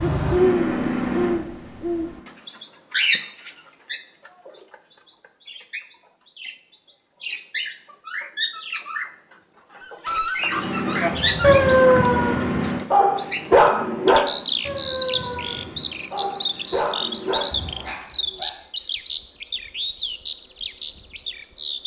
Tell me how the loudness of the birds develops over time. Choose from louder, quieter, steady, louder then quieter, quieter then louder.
quieter then louder.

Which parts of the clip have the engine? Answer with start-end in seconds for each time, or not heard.
0.0-2.4, 10.4-18.1.